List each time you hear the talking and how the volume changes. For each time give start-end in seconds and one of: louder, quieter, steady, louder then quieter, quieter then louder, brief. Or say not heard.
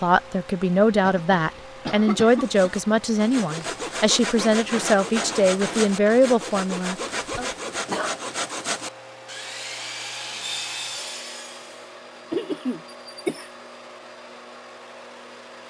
0.0-7.5 steady.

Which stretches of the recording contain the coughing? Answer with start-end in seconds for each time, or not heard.
1.0-2.9, 7.1-8.2, 12.3-13.5.